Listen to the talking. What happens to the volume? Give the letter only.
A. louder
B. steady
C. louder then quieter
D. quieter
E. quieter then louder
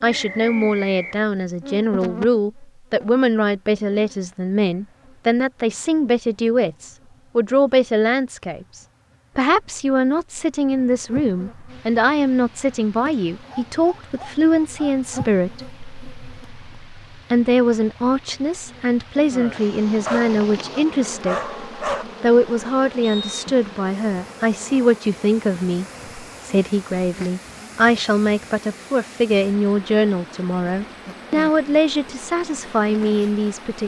B.